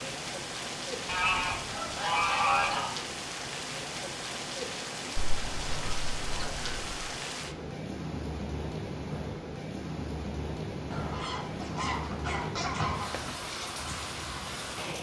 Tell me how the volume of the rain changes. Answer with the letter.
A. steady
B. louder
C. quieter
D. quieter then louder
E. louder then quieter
A.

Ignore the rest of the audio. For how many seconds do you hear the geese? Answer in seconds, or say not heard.
6 s.